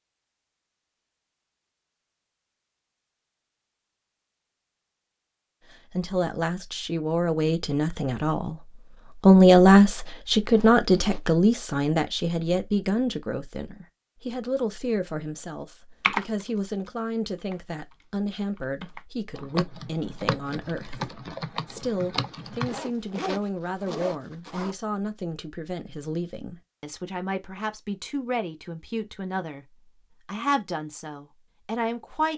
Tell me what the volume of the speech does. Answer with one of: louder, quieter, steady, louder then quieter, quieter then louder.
quieter.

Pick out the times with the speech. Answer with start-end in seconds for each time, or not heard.
5.7-32.3.